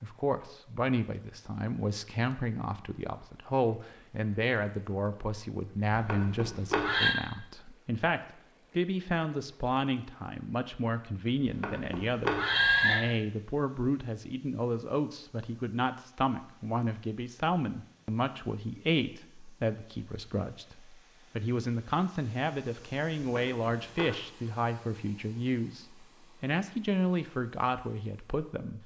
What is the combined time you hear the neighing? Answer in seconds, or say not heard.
4 s.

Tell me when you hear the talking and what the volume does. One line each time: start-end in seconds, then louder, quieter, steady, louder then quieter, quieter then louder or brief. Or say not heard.
0.0-28.8 steady.